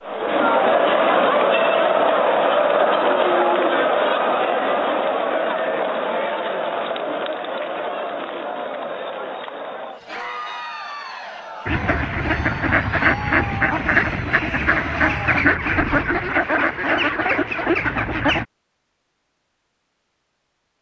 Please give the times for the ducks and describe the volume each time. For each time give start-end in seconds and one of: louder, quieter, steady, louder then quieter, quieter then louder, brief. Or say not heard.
11.7-18.4 steady.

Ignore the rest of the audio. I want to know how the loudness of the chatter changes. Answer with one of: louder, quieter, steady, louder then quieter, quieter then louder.
quieter.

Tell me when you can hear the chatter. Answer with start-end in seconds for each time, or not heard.
0.0-15.4.